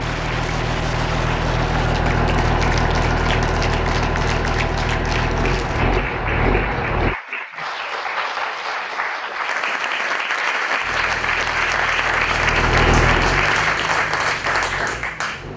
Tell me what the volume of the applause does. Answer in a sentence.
The volume of the applause goes up.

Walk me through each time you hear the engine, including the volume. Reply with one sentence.
The engine can be heard from 0.0 to 7.2 s, at a steady volume; and from 10.8 to 15.5 s, getting louder then quieter.